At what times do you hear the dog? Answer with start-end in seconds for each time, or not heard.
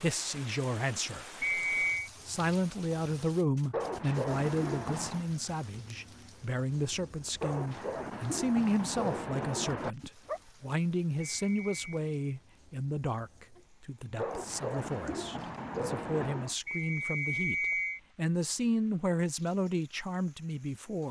3.7-5.2, 7.4-10.4, 14.2-16.6.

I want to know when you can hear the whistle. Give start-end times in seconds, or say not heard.
1.4-2.1, 11.4-12.0, 16.6-18.0.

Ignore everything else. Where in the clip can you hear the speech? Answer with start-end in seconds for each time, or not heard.
0.0-1.4, 2.2-21.0.